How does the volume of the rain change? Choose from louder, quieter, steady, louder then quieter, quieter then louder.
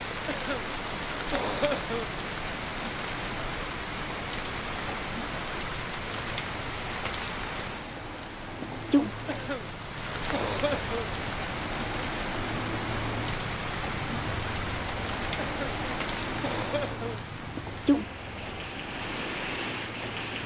steady.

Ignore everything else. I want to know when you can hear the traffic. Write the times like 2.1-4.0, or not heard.
0.0-20.4.